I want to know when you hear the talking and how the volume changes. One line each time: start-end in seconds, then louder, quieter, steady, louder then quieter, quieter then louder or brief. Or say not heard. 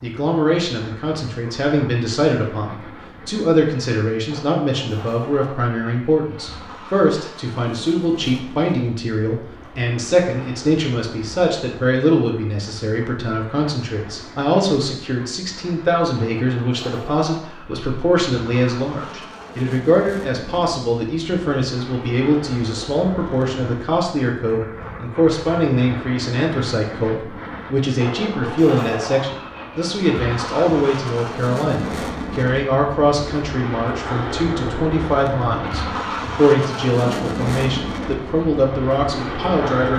0.0-39.9 steady.